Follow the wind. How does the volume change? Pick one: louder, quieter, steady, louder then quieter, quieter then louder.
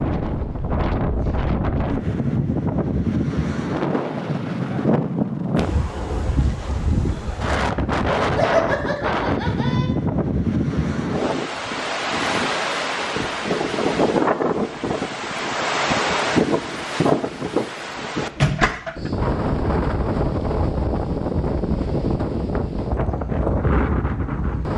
steady.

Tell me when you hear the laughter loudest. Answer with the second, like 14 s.
9 s.